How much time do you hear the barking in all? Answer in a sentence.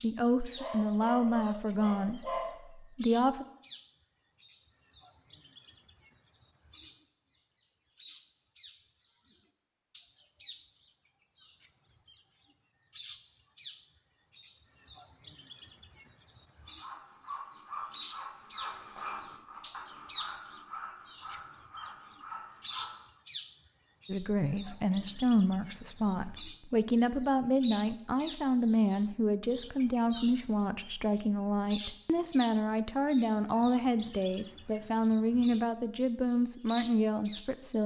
The barking can be heard for 2 seconds in total.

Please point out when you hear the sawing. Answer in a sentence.
You can hear the sawing from 16.6 to 23.1 s.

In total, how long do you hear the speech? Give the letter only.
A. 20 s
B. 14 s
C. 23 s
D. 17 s
D.